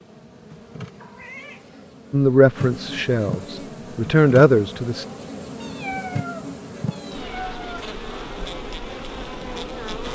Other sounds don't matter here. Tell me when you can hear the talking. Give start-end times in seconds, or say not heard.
2.1-5.0.